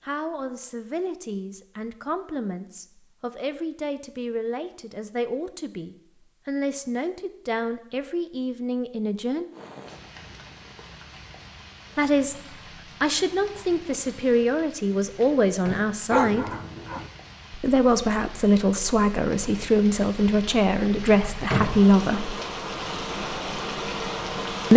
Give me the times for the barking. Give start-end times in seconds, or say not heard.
16.1-17.1.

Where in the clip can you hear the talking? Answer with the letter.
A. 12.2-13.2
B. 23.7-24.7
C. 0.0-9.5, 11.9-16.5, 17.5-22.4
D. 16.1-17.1
C.